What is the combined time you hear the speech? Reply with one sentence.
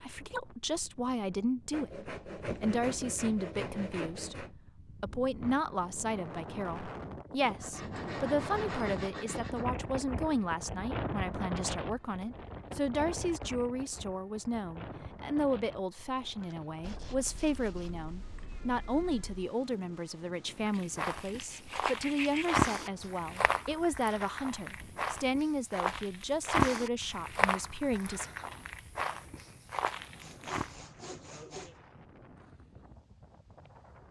You can hear the speech for 28 seconds altogether.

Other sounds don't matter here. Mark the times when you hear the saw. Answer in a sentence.
You can hear the saw from 1.7 to 4.5 s, from 7.4 to 9.7 s, from 16.4 to 18.1 s, from 20.7 to 22.6 s and from 30.2 to 31.8 s.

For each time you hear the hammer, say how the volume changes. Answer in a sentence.
You can't hear the hammer here.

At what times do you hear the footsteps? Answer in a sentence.
You can hear the footsteps from 20.7 to 30.7 s.